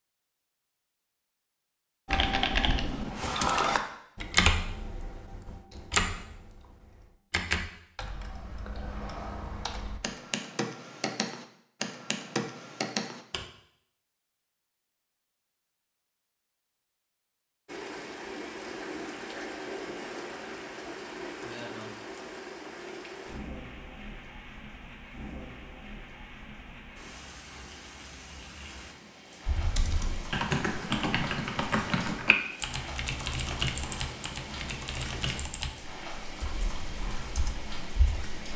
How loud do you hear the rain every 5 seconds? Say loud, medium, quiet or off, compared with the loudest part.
off, off, off, loud, loud, medium, loud, loud.